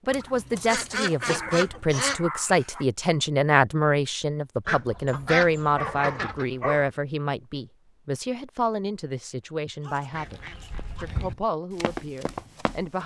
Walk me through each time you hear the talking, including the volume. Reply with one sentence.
The talking can be heard from 0.1 to 13.0 s, getting quieter.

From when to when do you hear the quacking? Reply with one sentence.
The quacking can be heard from 0.1 to 2.2 s, from 4.7 to 6.5 s and from 10.1 to 11.3 s.